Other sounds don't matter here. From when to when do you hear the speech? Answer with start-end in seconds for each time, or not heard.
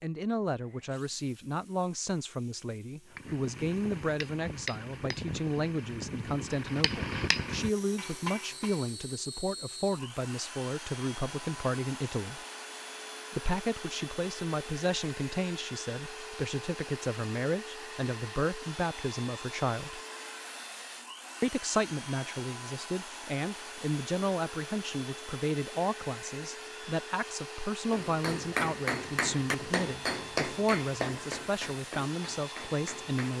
0.0-12.4, 13.3-20.0, 21.4-33.3.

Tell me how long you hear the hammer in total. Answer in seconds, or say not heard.
11 s.